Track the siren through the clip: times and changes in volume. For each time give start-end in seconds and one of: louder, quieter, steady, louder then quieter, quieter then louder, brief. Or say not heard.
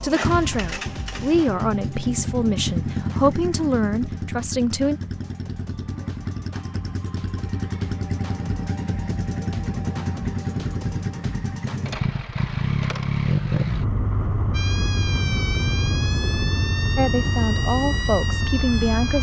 14.5-19.1 steady.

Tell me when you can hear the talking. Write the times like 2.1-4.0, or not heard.
0.0-5.0, 16.9-19.1.